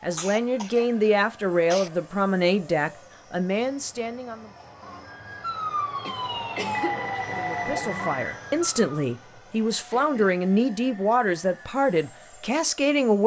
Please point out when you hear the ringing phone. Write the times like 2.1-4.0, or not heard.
6.8-8.3.